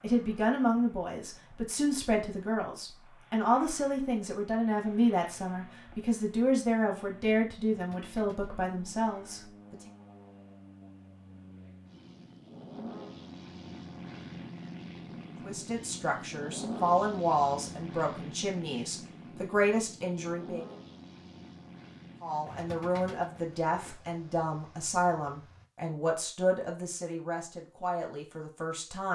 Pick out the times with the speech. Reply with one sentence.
You can hear the speech from 0.0 to 9.8 s, from 15.4 to 20.7 s and from 22.2 to 29.0 s.